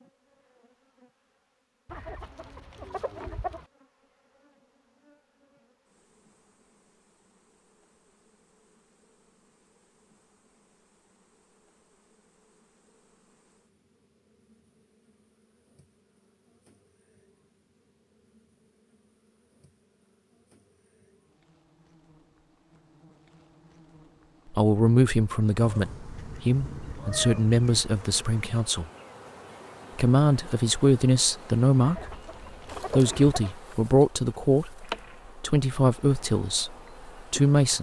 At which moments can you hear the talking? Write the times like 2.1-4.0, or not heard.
24.5-28.9, 29.9-32.1, 32.9-37.7.